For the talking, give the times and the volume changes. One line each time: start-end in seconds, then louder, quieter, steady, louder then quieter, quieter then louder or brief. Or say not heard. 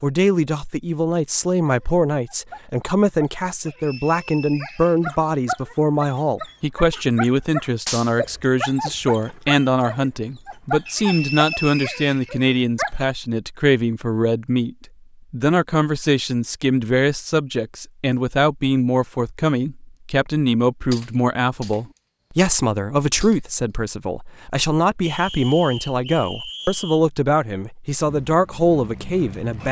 0.0-29.6 steady.